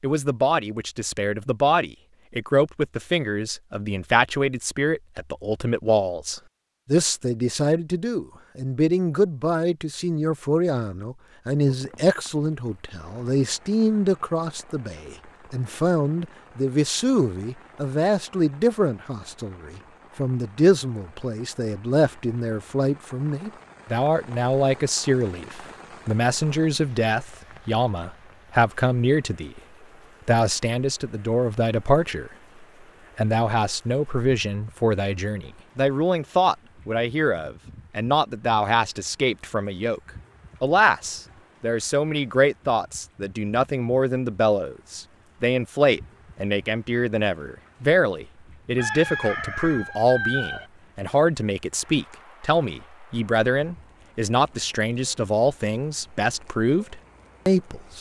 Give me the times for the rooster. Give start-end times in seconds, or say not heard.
48.8-50.7.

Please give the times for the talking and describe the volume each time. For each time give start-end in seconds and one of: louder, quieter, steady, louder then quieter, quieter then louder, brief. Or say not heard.
0.0-29.6 steady
30.2-32.3 brief
33.1-57.9 steady.